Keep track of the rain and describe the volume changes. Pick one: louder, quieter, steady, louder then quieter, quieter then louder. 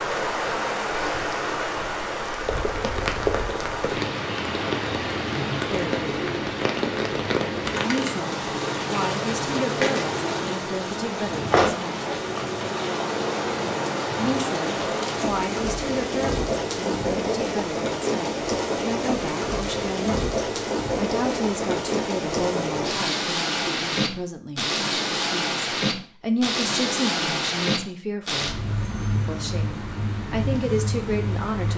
steady.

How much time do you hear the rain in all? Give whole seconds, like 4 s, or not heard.
32 s.